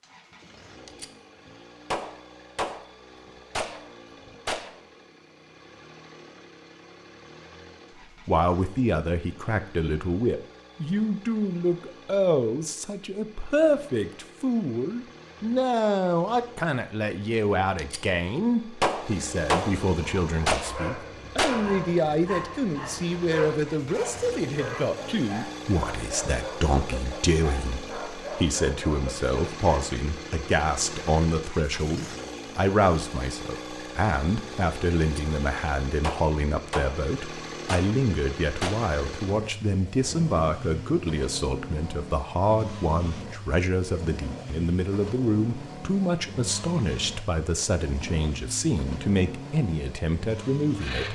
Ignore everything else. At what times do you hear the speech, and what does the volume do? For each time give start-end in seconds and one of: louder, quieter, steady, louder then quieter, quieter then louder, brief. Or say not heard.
8.2-51.1 steady.